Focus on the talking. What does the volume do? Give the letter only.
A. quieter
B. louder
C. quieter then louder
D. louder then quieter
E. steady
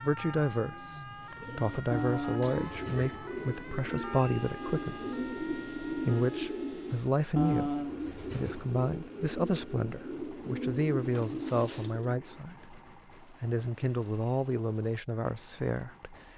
E.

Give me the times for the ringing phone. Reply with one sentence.
The ringing phone can't be heard in this clip.